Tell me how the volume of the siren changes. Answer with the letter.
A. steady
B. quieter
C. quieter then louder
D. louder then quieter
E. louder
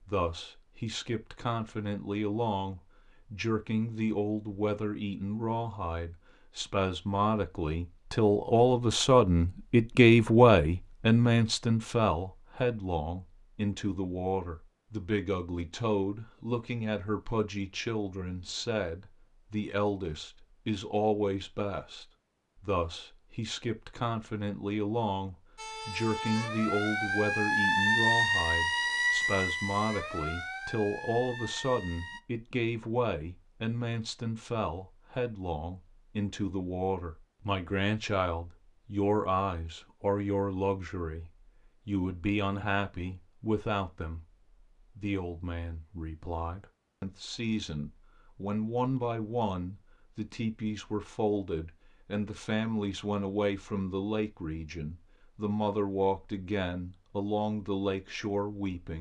D.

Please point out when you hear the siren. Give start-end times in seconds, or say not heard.
25.6-32.2.